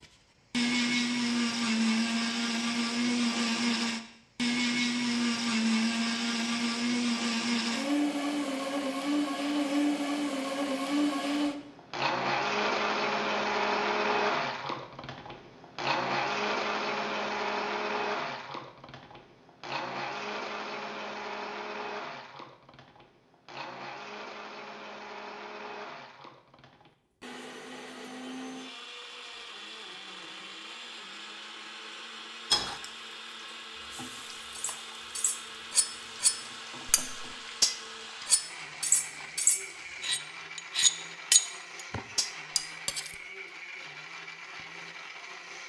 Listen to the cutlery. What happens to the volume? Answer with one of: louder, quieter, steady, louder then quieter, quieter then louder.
louder.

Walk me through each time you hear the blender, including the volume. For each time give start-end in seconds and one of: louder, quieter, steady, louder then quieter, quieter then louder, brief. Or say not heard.
0.0-45.6 quieter.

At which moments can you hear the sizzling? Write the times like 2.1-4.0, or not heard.
32.5-40.2.